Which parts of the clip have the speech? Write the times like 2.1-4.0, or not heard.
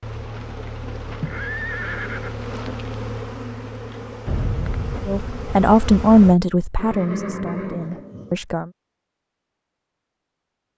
5.0-8.7.